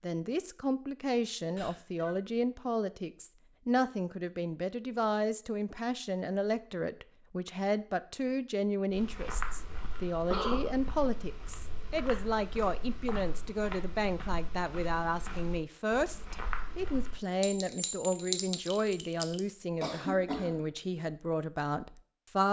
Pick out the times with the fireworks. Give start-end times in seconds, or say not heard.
not heard.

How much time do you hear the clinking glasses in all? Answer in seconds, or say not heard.
2 s.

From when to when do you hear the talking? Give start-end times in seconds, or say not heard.
0.0-22.4.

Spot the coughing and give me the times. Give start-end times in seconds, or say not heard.
1.6-2.2, 9.8-10.7, 19.8-20.6.